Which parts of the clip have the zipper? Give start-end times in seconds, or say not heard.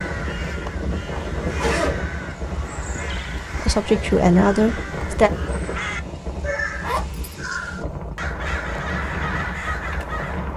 1.1-2.0, 6.8-7.2.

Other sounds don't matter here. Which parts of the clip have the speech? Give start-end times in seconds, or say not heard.
3.5-5.3.